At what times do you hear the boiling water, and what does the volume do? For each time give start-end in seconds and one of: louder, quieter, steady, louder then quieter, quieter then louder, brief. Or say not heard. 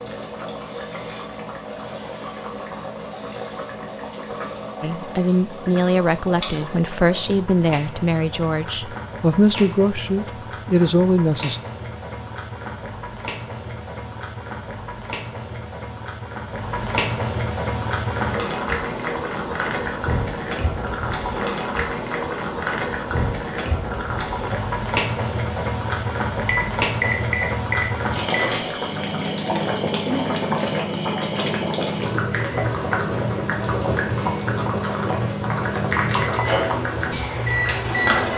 0.0-38.3 louder.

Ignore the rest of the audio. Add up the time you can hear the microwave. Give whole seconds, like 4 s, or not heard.
12 s.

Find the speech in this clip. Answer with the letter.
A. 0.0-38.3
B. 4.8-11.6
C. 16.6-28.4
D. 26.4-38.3
B.